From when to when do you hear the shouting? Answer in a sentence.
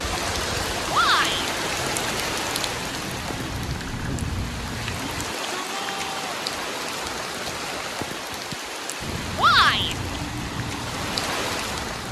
You can hear the shouting from 0.9 to 1.5 s, from 5.1 to 6.2 s and from 9.3 to 9.9 s.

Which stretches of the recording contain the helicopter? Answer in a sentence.
The helicopter can be heard from 0.0 to 5.2 s and from 9.0 to 12.0 s.